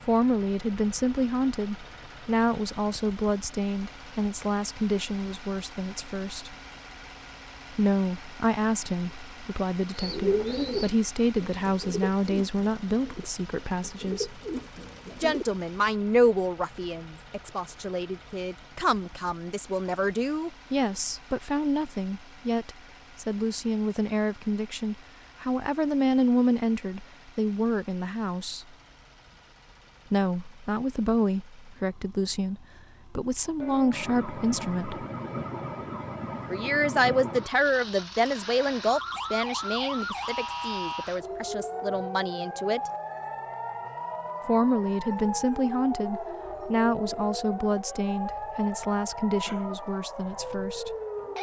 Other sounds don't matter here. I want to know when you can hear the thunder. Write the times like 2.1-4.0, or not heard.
not heard.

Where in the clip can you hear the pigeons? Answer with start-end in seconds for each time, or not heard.
9.9-15.4.